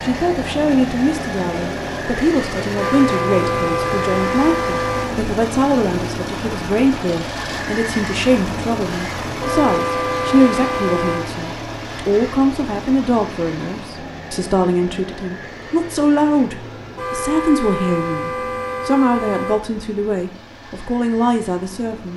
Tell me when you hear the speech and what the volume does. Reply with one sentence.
The speech can be heard from 0.0 to 22.1 s, at a steady volume.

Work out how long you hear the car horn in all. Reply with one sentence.
You can hear the car horn for 7 seconds altogether.